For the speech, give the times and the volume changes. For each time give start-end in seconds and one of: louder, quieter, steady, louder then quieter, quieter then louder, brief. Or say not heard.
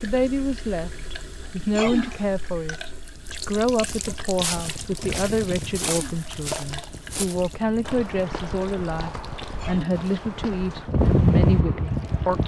0.0-12.4 steady.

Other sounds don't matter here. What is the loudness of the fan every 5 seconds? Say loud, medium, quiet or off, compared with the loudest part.
quiet, quiet, loud.